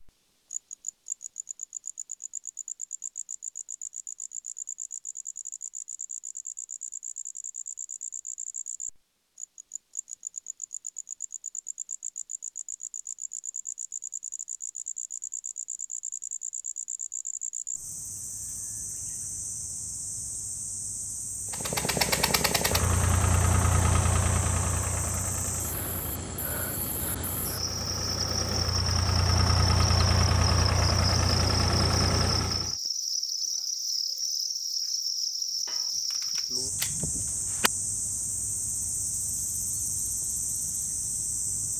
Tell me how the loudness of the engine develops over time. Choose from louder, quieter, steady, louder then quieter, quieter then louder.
quieter then louder.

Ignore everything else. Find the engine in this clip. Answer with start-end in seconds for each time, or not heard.
21.5-32.8.